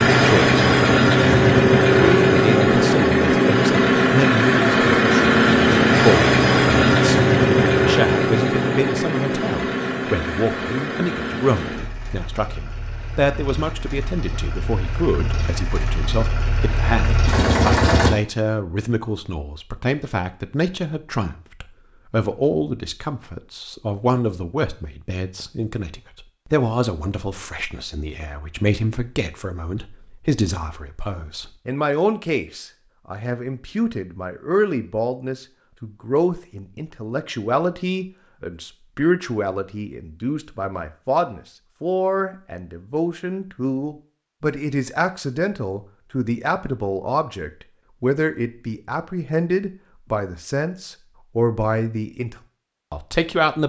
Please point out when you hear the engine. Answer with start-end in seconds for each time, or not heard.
0.0-18.1.